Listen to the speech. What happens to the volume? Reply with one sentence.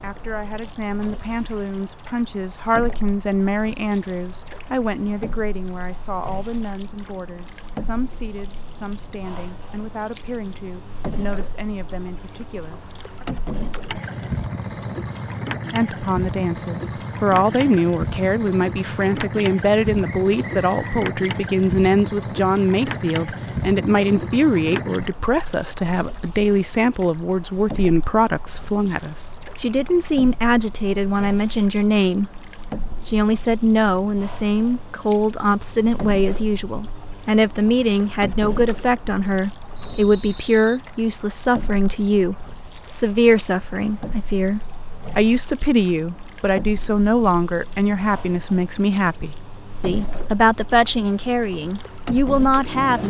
The loudness of the speech goes up.